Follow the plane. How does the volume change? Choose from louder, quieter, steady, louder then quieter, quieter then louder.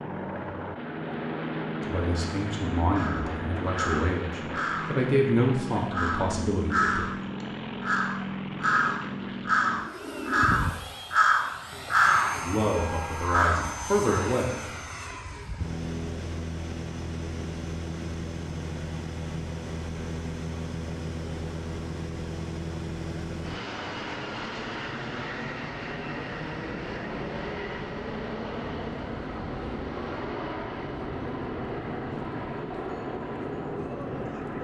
steady.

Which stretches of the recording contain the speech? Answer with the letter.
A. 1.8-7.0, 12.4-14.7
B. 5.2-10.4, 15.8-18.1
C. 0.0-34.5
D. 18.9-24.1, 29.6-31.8
A.